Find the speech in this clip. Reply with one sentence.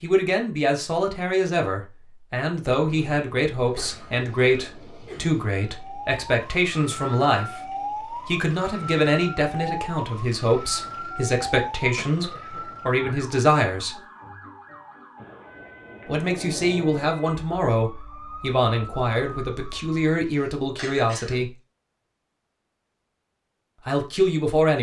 The speech can be heard from 0.0 to 13.9 s, from 16.1 to 21.5 s and from 23.9 to 24.7 s.